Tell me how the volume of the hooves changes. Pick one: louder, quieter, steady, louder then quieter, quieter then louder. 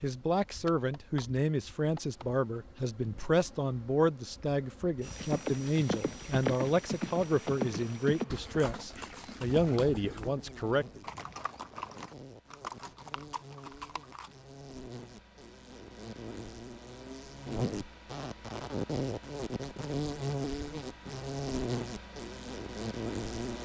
quieter.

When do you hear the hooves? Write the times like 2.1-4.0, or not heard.
5.0-14.3.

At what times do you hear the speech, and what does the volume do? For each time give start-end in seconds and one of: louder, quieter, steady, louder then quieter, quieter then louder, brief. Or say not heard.
0.0-11.0 steady.